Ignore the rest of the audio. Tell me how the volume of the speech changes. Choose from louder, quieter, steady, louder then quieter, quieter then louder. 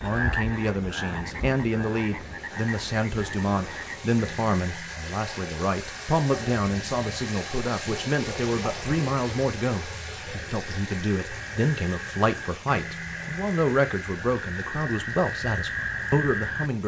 steady.